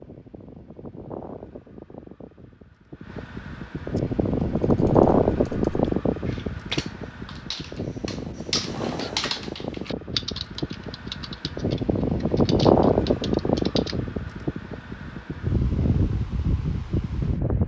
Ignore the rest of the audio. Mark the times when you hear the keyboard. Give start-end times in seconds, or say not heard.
4.0-13.9.